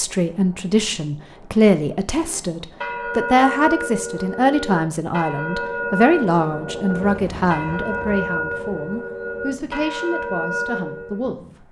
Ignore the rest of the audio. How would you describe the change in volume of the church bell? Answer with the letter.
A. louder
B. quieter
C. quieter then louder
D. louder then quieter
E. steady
E.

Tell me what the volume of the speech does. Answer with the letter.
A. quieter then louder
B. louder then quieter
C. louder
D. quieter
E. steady
D.